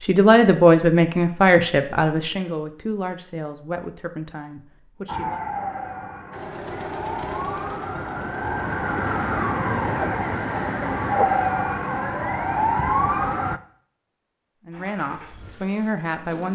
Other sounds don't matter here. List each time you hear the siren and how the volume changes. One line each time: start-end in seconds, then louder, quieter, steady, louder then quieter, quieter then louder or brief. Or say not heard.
5.0-13.6 louder.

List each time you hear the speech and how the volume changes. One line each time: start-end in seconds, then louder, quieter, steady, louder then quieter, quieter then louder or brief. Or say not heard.
0.0-5.4 quieter
14.7-16.4 brief.